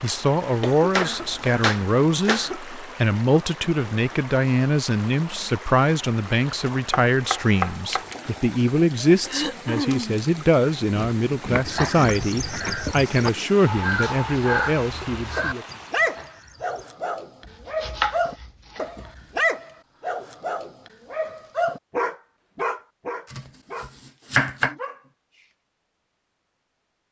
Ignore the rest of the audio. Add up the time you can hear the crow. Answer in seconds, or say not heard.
5 s.